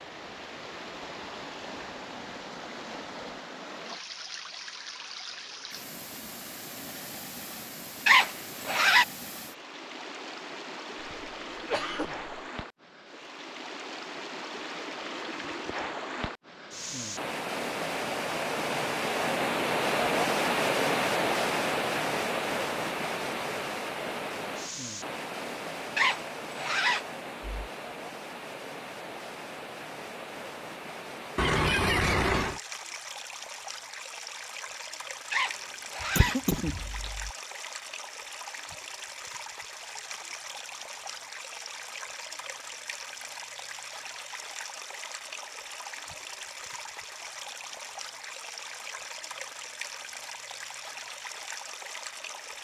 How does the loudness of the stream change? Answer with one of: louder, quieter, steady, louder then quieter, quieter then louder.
louder then quieter.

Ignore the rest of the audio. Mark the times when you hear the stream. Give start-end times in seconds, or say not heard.
0.0-52.5.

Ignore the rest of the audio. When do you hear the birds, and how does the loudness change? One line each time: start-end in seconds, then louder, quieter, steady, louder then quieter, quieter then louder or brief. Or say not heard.
not heard.